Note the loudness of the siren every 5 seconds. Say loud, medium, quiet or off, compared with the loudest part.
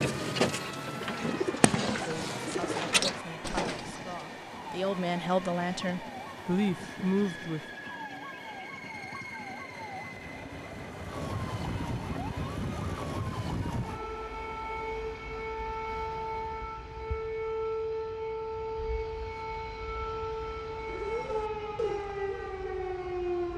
medium, medium, loud, loud, loud.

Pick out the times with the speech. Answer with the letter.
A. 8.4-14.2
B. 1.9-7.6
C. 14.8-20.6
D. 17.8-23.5
B.